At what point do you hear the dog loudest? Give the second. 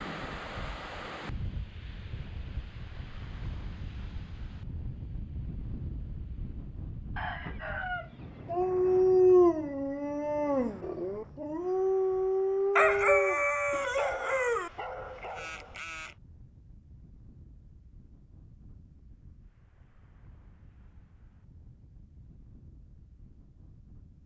9 s.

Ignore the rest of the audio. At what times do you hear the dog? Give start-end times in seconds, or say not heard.
8.5-16.1.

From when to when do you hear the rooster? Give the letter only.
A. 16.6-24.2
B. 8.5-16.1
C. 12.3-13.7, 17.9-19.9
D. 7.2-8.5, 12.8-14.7
D.